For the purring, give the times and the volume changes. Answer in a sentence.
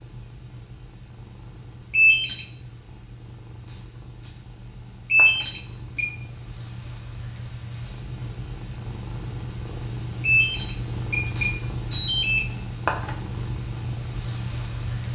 You can hear the purring from 0.0 to 15.1 s, getting louder.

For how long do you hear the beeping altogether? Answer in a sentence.
You can hear the beeping for 4 seconds altogether.